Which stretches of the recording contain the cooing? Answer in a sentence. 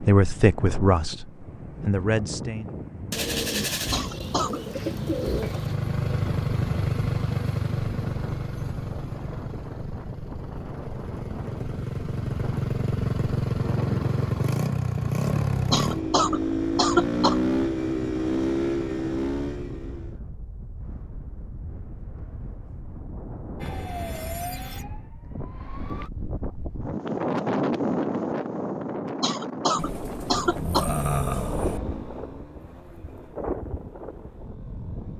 The cooing can be heard from 3.1 to 5.8 s and from 29.8 to 31.8 s.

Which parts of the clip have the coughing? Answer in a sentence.
The coughing can be heard from 3.9 to 4.6 s, from 15.7 to 17.4 s and from 29.2 to 30.9 s.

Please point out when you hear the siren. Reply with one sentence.
You can hear the siren from 23.6 to 26.1 s.